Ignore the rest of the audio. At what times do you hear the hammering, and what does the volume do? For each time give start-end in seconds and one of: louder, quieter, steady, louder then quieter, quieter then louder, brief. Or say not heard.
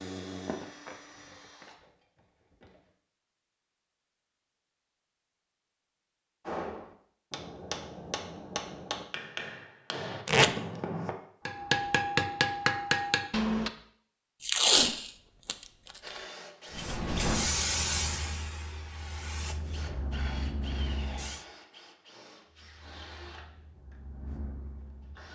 6.5-13.7 louder.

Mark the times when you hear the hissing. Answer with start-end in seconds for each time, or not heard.
16.7-21.4, 22.4-25.2.